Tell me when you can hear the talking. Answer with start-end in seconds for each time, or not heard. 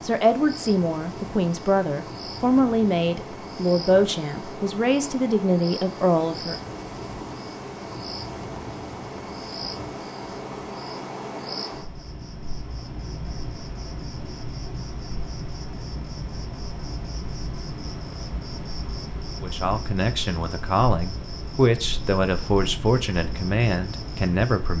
0.0-6.5, 19.4-24.7.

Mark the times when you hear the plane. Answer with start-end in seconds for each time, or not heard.
not heard.